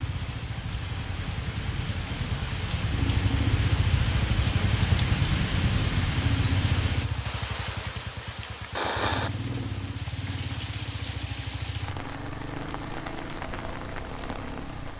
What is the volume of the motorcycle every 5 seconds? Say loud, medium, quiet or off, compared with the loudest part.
loud, loud, medium.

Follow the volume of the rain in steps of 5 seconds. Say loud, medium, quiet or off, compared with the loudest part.
loud, loud, medium.